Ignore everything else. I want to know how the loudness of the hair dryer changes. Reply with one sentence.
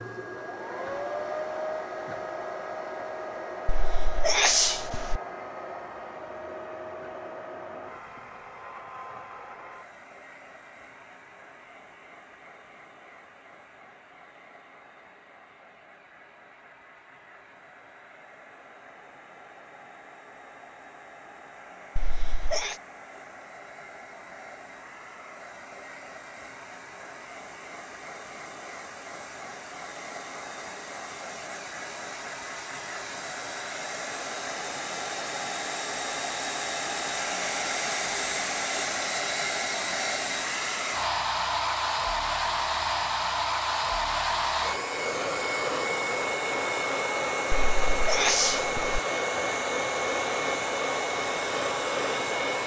The volume of the hair dryer goes down, then up.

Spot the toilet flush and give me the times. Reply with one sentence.
You can't hear the toilet flush here.